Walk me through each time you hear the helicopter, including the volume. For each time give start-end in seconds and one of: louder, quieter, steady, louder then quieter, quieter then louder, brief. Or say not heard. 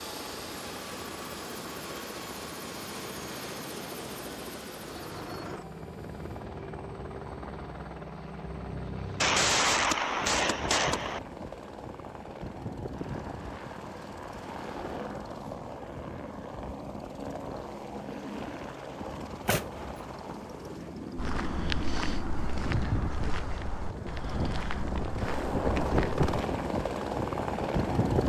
0.0-28.2 louder.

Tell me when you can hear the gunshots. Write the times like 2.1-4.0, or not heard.
9.2-11.2, 19.2-20.0.